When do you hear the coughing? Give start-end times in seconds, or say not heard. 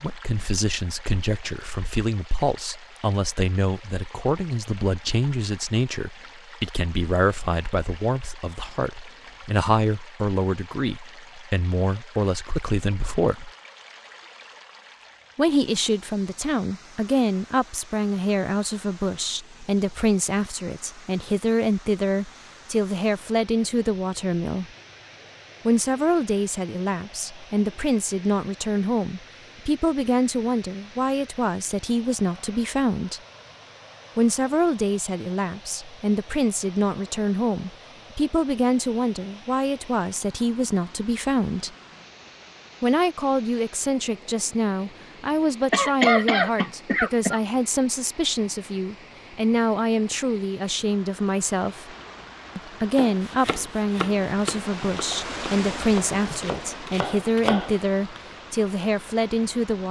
45.7-47.4.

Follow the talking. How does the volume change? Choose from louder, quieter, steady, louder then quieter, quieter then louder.
steady.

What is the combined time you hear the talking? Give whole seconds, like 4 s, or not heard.
54 s.